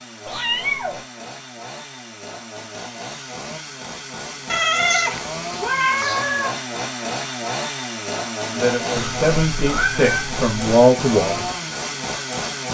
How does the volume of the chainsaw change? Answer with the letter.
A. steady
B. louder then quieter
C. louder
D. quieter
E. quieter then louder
C.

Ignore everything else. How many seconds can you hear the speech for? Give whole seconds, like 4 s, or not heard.
3 s.